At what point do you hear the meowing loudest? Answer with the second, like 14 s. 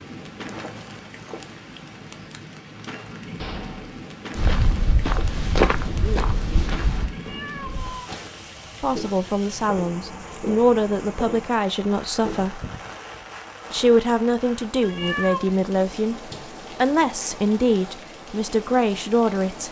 15 s.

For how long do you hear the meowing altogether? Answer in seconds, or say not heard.
2 s.